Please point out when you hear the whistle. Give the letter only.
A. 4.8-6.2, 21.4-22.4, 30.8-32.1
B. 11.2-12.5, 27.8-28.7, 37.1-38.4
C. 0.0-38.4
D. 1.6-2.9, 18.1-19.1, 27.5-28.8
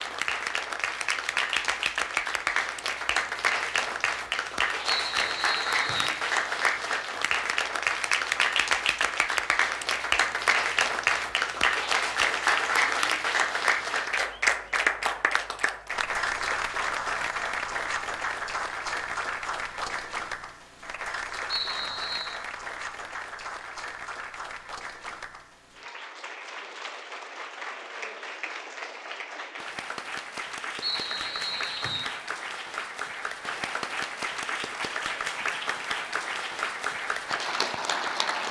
A.